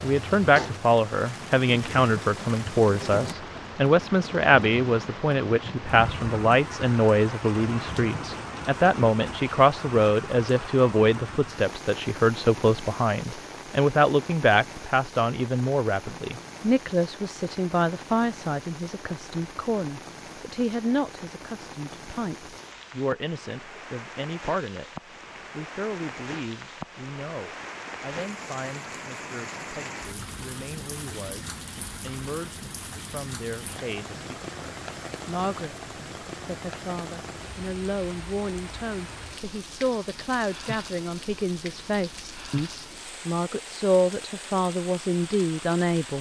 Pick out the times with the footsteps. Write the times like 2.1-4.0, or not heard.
not heard.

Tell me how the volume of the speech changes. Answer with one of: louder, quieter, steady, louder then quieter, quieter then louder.
quieter then louder.